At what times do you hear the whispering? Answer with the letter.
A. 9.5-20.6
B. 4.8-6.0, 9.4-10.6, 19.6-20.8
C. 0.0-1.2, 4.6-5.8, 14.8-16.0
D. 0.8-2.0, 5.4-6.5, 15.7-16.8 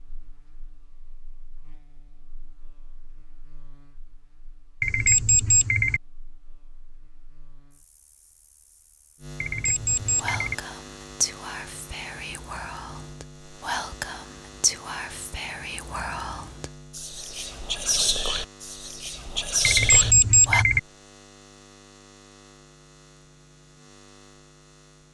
A.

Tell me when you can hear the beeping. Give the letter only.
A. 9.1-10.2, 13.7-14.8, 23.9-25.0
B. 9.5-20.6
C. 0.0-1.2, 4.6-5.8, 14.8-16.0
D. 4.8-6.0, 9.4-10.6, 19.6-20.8
D.